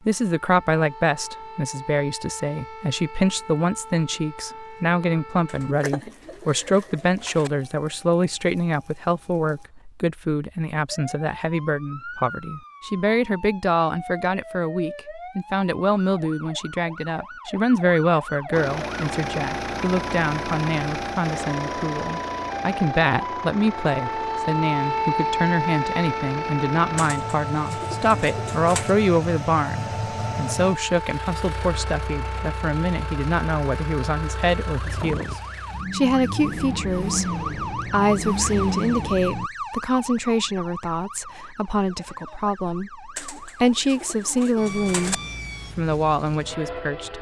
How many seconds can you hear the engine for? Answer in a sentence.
You can hear the engine for 21 seconds altogether.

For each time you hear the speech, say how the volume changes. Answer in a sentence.
The speech can be heard from 0.1 to 47.1 s, at a steady volume.